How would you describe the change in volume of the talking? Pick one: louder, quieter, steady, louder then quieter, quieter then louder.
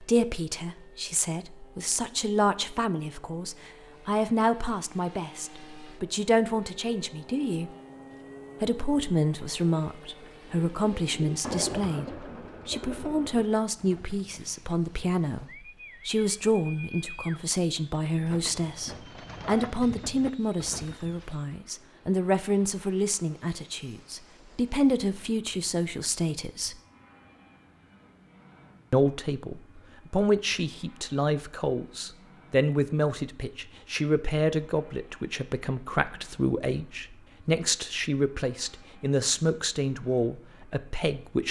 steady.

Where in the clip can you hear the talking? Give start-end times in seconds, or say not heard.
0.0-7.7, 8.6-26.8, 28.9-41.4.